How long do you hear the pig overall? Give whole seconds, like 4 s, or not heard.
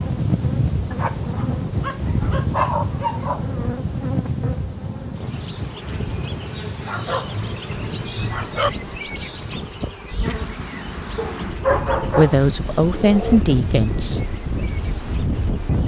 not heard.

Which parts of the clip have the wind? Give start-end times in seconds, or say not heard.
0.0-15.8.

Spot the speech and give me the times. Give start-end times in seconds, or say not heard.
12.1-14.2.